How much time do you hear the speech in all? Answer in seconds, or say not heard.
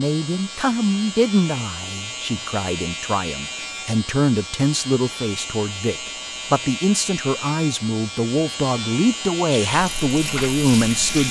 11 s.